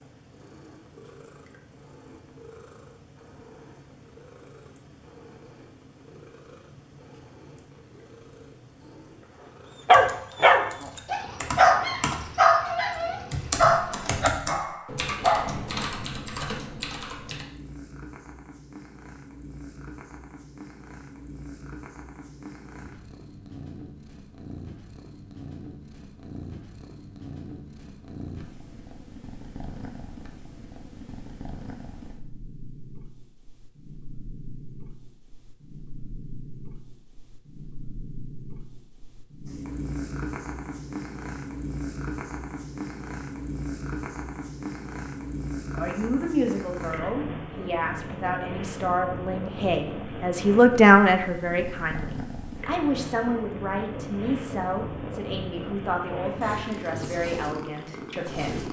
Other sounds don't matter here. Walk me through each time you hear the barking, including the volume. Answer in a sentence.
The barking can be heard from 9.8 to 15.6 s, getting quieter.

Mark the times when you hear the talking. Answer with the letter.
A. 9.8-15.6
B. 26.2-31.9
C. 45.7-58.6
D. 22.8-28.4
C.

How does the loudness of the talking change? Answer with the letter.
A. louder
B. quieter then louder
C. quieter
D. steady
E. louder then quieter
E.